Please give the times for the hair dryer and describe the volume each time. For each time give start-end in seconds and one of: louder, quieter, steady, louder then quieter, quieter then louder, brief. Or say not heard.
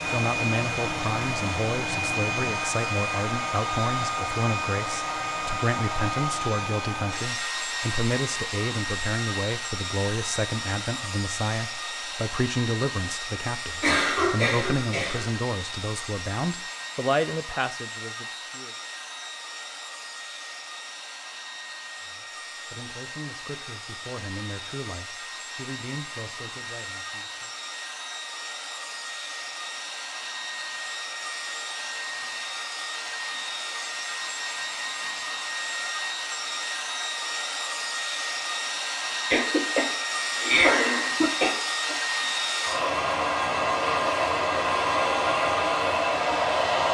0.0-46.8 quieter then louder.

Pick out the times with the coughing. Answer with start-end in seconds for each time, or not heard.
13.8-15.3, 39.3-42.0.